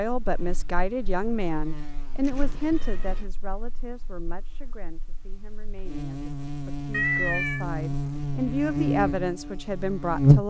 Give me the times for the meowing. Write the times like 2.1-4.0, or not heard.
2.2-3.3, 6.9-7.7.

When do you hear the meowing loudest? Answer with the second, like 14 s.
7 s.